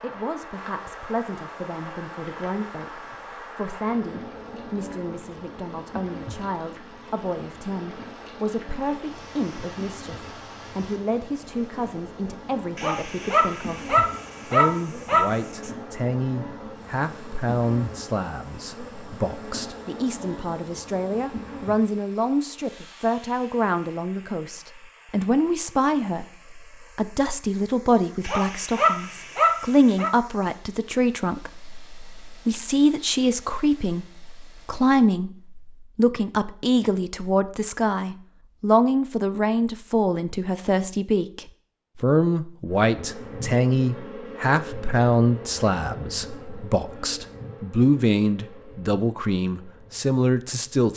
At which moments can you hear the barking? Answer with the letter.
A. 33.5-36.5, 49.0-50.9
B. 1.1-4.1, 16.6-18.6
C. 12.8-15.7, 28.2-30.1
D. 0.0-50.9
C.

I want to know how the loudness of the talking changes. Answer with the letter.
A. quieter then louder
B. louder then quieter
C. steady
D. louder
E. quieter
D.